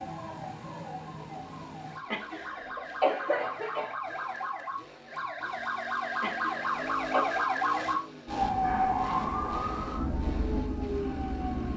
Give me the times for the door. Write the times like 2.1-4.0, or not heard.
not heard.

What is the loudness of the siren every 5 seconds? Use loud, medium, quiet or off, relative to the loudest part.
medium, loud, loud.